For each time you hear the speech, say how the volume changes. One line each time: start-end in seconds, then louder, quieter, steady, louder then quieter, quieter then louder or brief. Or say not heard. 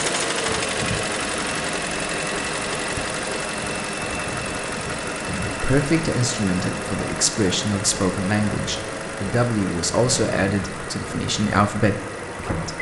5.5-12.7 steady.